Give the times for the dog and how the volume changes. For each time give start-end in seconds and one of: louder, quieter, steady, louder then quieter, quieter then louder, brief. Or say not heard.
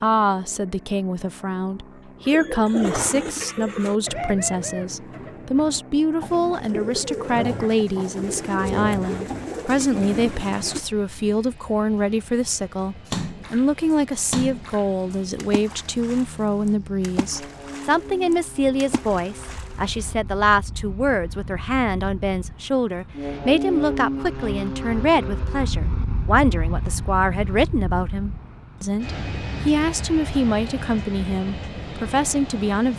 not heard.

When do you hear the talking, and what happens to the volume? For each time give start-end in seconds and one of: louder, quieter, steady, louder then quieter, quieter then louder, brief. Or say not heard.
0.0-32.9 steady.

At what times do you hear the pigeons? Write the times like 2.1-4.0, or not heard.
2.2-10.8.